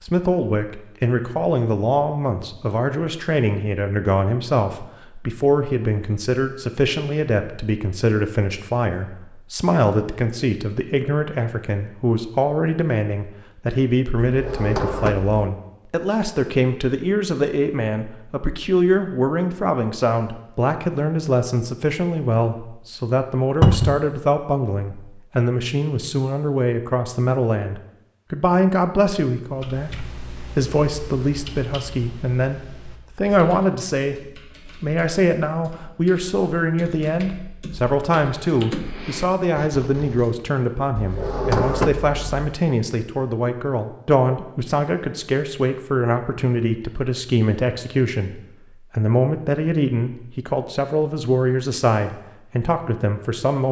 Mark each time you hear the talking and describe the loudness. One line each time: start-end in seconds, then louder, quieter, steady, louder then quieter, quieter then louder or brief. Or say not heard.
0.0-53.6 steady.